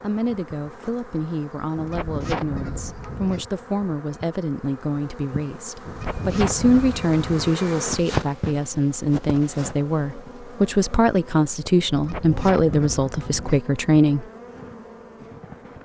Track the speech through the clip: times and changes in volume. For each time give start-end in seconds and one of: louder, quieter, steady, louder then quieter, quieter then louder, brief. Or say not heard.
0.0-14.2 louder.